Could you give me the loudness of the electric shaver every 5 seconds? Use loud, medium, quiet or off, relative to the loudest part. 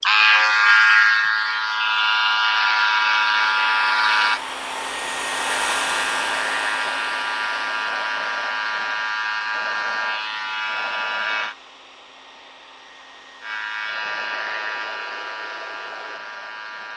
loud, medium, medium, quiet.